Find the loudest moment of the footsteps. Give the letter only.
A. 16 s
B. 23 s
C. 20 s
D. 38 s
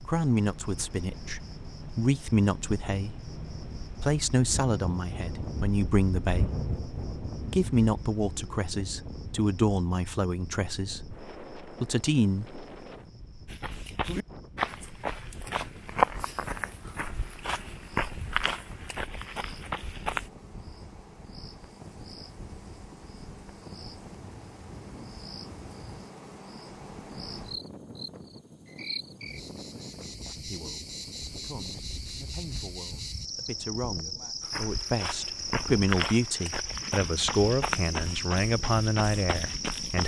A.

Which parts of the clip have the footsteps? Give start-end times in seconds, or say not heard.
13.4-20.3, 34.4-40.0.